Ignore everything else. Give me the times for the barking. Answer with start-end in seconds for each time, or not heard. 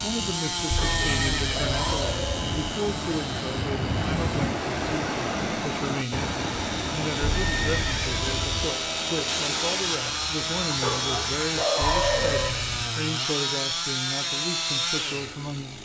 0.8-2.5, 10.8-12.7.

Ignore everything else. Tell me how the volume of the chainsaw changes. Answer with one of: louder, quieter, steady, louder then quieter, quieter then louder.
quieter then louder.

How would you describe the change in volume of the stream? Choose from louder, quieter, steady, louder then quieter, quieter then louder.
louder then quieter.